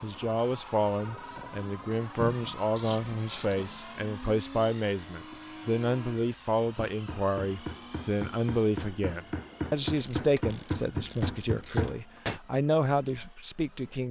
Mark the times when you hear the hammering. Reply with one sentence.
You can hear the hammering from 6.8 to 12.4 s.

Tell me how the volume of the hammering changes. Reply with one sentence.
The loudness of the hammering goes up.